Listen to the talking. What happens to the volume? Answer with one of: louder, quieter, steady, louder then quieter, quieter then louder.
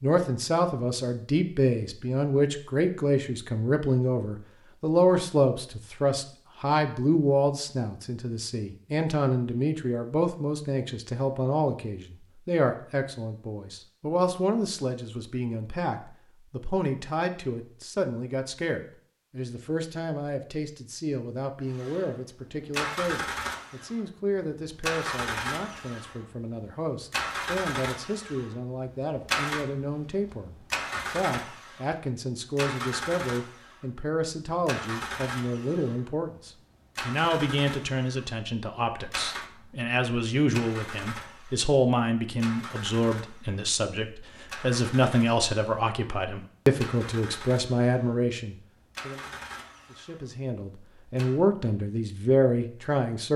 quieter then louder.